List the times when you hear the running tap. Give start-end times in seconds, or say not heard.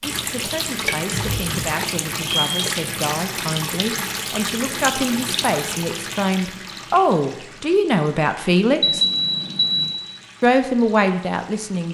0.0-11.8.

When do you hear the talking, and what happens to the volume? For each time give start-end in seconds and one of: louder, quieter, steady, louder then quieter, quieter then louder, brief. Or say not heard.
0.1-9.1 louder
10.4-11.8 brief.